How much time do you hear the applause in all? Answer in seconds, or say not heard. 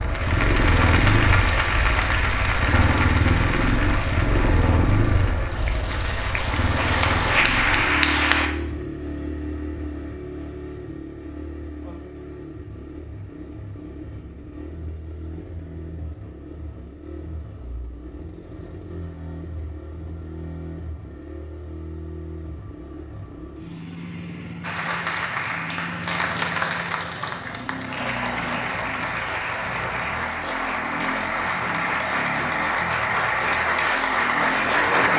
19 s.